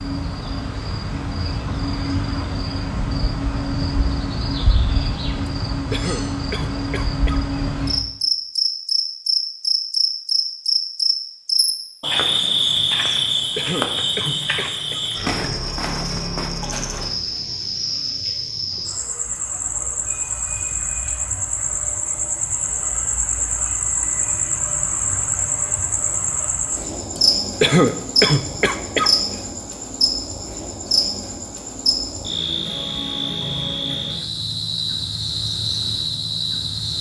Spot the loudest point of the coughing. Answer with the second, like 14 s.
28 s.